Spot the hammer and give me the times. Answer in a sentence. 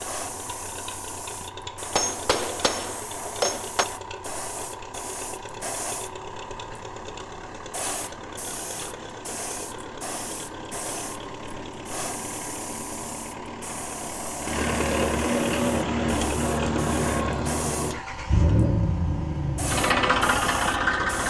The hammer can be heard from 1.9 to 3.9 s.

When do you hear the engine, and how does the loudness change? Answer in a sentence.
You can hear the engine from 0.0 to 21.2 s, getting louder.